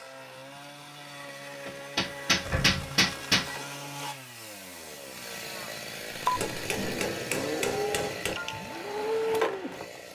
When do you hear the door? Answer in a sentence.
The door can be heard from 2.5 to 3.0 s and from 6.3 to 7.0 s.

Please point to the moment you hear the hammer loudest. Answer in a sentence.
The loudest moment of the hammer is at 3 seconds.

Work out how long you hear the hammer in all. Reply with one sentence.
You can hear the hammer for 4 seconds altogether.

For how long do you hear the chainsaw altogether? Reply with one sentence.
The chainsaw can be heard for 10 seconds in total.